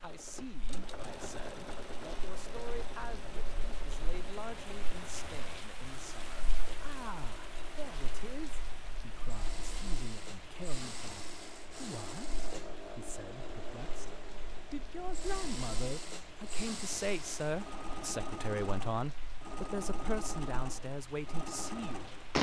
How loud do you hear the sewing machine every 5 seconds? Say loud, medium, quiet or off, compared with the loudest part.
loud, medium, loud, loud, loud.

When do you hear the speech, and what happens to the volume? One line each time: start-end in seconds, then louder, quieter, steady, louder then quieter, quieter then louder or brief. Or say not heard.
0.0-22.1 louder.